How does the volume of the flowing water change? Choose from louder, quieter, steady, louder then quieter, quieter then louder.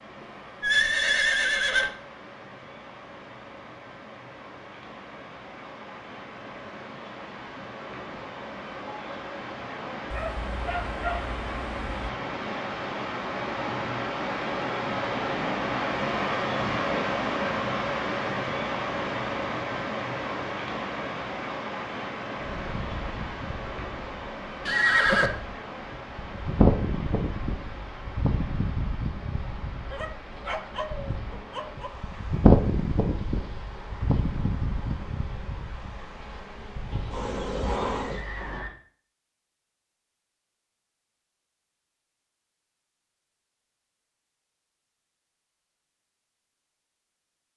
louder then quieter.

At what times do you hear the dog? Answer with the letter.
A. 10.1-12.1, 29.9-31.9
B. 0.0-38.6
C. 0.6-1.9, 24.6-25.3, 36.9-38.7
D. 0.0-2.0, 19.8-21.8
A.